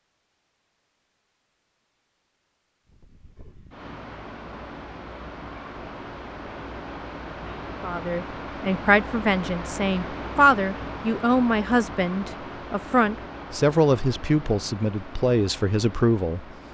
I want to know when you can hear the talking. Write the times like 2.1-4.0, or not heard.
7.8-16.4.